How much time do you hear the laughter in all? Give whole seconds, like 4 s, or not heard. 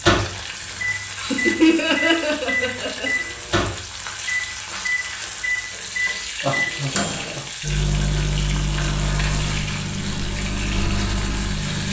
3 s.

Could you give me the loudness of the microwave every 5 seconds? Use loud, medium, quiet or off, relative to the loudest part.
loud, loud, medium.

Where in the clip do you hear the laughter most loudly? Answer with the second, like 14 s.
2 s.